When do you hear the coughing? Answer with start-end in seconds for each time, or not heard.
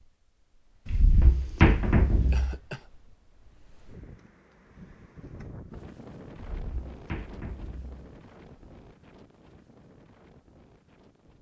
2.3-2.9.